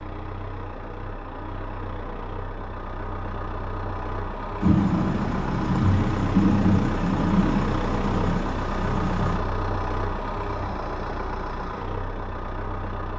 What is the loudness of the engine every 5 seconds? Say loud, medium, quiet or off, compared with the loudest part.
medium, loud, loud.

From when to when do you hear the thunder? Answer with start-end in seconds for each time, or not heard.
4.6-9.4.